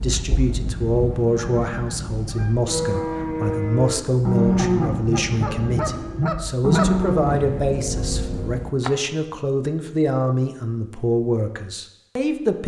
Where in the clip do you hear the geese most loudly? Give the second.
7 s.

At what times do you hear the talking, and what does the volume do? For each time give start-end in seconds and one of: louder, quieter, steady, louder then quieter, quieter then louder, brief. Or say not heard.
0.0-12.6 steady.